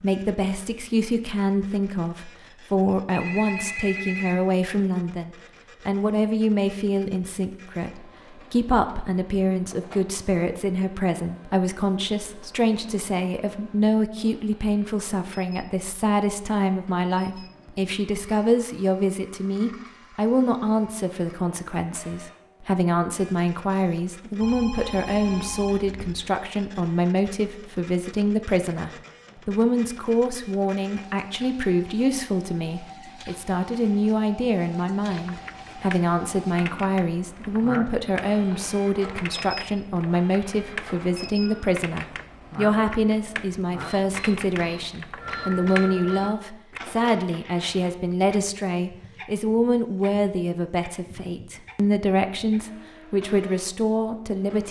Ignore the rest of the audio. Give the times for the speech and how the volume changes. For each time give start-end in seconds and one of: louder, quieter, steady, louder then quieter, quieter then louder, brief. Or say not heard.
0.0-54.6 steady.